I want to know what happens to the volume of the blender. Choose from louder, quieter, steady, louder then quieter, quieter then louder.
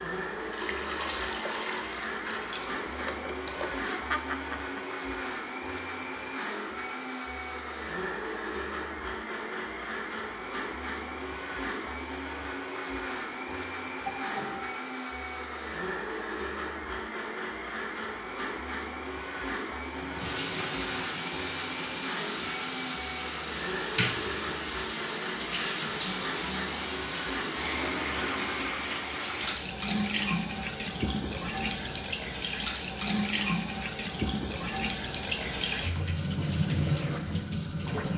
steady.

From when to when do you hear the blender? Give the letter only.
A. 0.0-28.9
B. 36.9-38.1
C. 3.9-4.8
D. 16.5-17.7
A.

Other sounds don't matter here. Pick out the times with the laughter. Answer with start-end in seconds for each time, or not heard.
3.9-4.8.